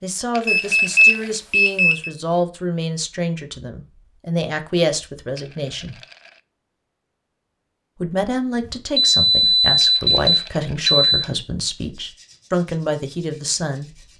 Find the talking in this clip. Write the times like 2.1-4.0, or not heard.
0.0-6.0, 8.0-14.0.